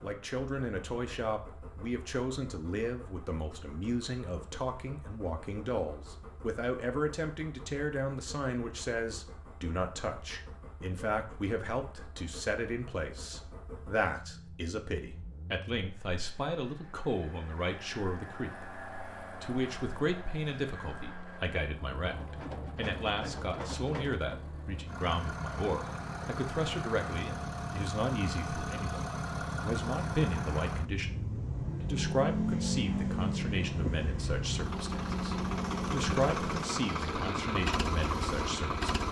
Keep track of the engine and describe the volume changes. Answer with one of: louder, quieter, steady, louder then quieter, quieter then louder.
louder.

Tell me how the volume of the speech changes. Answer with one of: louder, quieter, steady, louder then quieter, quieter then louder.
steady.